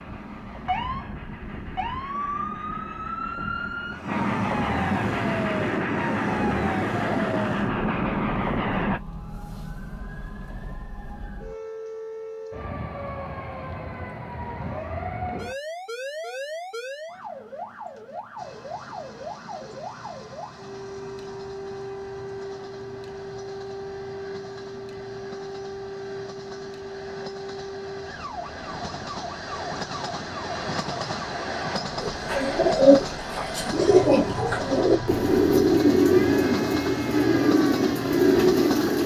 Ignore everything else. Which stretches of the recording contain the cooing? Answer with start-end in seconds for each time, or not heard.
31.9-39.0.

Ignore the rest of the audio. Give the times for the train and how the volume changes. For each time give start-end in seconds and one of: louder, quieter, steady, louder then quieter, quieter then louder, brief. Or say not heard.
0.0-9.0 louder
18.4-39.0 louder.